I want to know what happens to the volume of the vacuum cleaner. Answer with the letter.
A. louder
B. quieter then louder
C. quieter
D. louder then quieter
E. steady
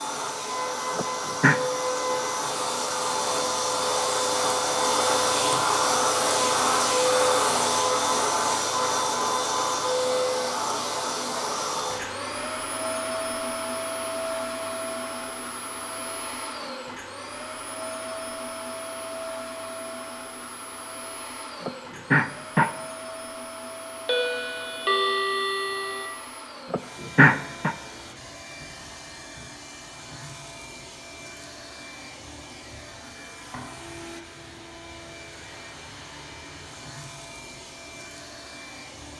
C.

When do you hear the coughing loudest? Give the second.
27 s.